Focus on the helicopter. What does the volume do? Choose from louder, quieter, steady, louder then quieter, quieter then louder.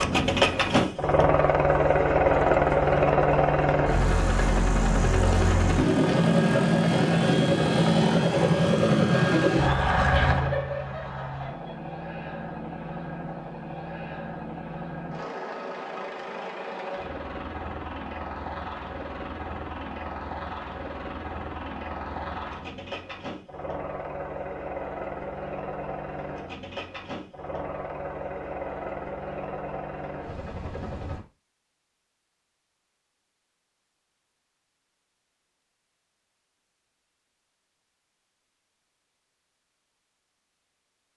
quieter.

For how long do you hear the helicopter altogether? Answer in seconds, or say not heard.
31 s.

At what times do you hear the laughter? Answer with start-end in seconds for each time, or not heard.
10.1-11.9.